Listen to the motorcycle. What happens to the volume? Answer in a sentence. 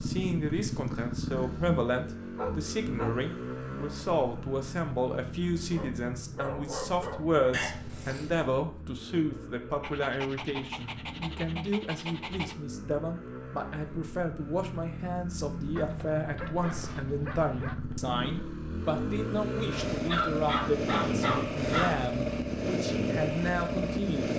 The loudness of the motorcycle goes down, then up.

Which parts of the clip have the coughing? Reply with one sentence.
The coughing can be heard from 7.5 to 8.5 s.